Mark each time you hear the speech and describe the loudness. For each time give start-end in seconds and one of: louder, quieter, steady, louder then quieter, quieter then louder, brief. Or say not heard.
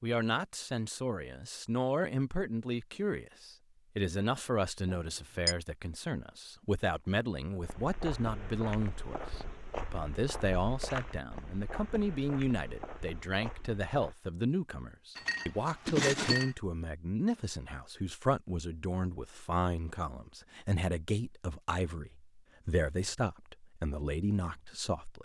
0.0-25.1 steady.